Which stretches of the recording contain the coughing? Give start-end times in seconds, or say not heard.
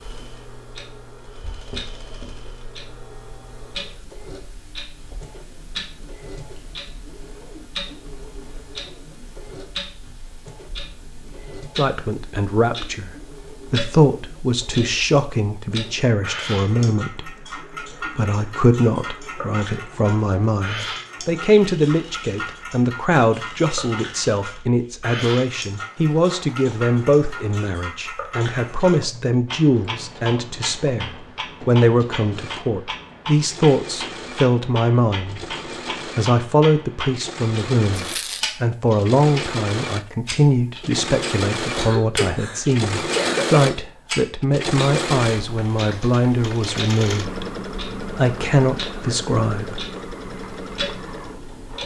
41.8-43.8.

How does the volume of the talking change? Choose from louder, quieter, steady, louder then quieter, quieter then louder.
steady.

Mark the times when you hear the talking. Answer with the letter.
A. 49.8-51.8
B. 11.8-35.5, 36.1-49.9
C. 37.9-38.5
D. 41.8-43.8
B.